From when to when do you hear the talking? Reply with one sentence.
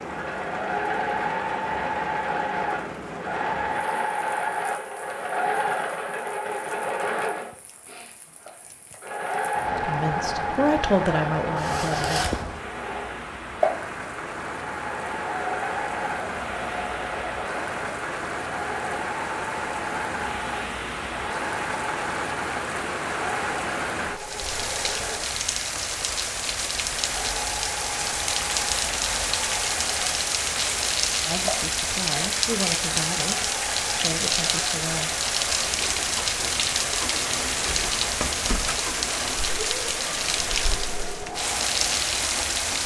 You can hear the talking from 9.7 to 12.2 s and from 31.2 to 35.1 s.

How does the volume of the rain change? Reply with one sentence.
The volume of the rain goes up.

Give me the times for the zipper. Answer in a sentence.
You can hear the zipper from 11.6 to 12.4 s.